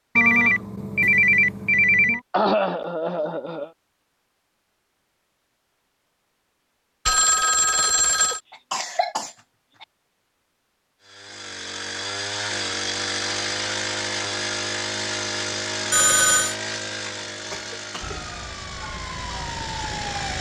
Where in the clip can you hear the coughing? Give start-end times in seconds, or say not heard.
2.3-3.7, 7.8-9.8, 17.1-18.2.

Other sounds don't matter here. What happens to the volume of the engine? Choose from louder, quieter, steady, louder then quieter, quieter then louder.
quieter.